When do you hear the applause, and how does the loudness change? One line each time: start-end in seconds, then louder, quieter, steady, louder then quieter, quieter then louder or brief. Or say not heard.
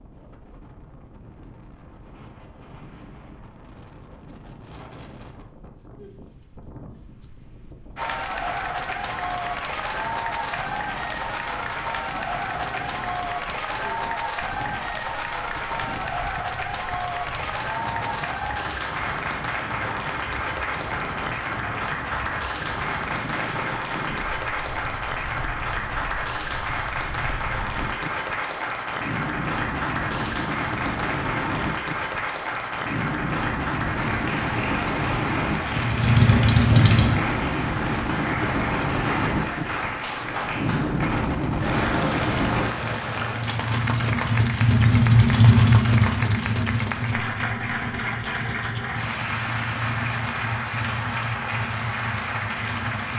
8.0-53.1 steady.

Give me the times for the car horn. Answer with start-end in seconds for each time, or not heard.
not heard.